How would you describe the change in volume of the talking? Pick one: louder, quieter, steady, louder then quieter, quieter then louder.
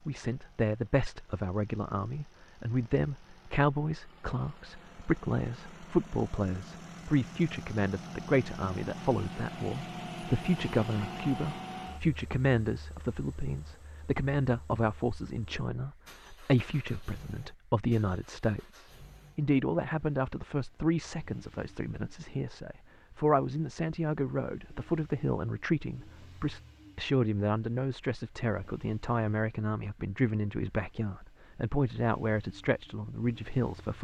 steady.